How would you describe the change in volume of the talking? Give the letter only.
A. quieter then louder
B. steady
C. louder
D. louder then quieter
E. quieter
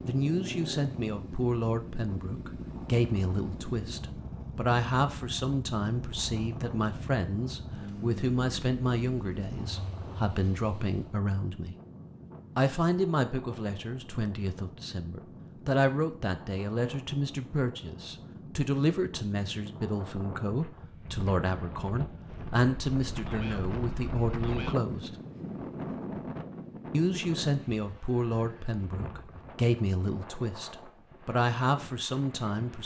B.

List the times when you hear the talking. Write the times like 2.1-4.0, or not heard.
0.1-11.8, 12.6-25.1, 26.9-32.8.